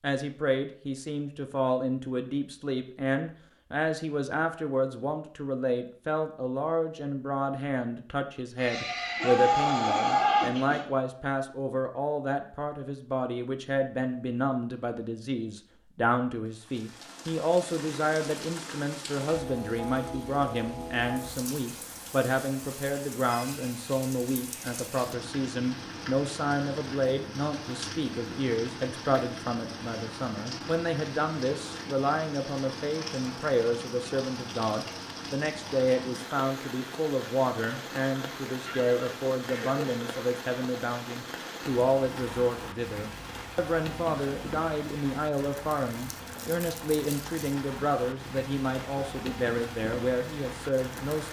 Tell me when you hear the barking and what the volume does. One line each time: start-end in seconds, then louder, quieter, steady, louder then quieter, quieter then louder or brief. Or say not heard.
not heard.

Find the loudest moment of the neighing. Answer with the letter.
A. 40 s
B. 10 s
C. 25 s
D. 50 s
B.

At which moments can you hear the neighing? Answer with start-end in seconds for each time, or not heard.
8.6-10.8, 38.6-39.9.